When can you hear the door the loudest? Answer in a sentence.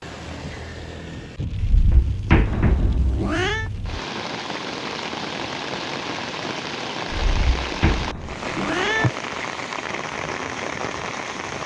The volume of the door peaks at 2 seconds.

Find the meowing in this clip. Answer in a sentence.
You can hear the meowing from 2.5 to 3.7 s and from 8.0 to 9.1 s.